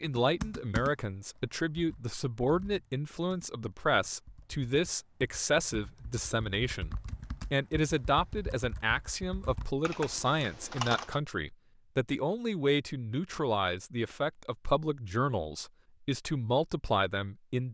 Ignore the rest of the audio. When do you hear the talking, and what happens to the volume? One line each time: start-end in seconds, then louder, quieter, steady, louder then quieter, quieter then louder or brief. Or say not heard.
0.0-17.7 steady.